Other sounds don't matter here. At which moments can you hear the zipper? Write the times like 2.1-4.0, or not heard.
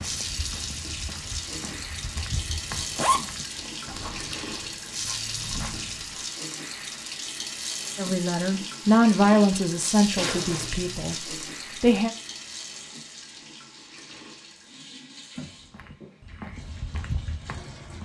2.8-4.7, 10.2-11.2.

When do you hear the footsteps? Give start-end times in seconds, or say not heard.
0.0-6.2, 15.7-17.9.